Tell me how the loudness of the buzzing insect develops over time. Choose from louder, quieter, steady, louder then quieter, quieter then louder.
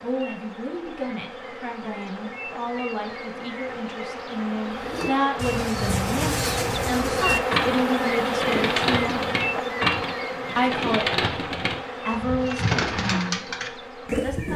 louder then quieter.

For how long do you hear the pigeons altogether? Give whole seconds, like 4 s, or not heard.
10 s.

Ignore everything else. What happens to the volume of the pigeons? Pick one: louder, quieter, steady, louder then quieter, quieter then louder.
steady.